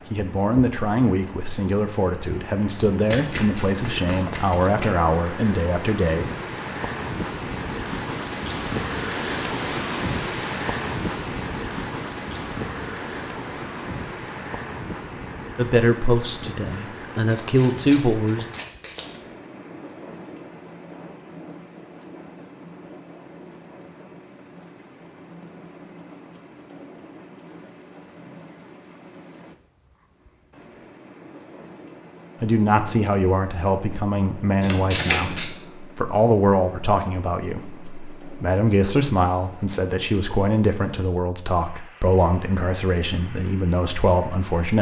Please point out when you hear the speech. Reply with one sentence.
The speech can be heard from 0.1 to 6.2 s, from 15.6 to 18.4 s and from 32.4 to 44.7 s.